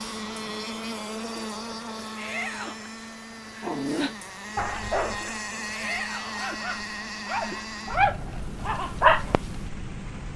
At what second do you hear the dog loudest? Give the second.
9 s.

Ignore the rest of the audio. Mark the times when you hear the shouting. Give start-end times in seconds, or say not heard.
2.1-2.8, 5.7-6.5.